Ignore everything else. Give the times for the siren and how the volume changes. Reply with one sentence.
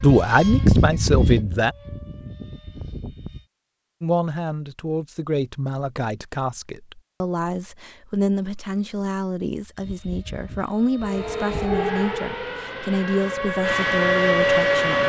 You can hear the siren from 11.0 to 15.0 s, getting quieter then louder.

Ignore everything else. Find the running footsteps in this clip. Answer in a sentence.
The running footsteps can't be heard in this clip.